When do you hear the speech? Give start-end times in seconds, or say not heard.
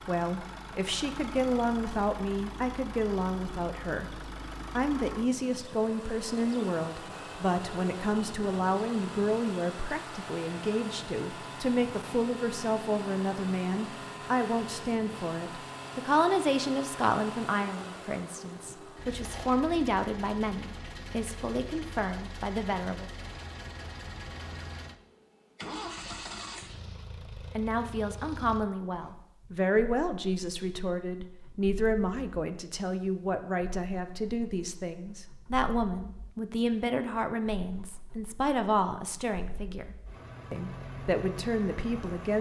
0.1-23.1, 27.6-42.3.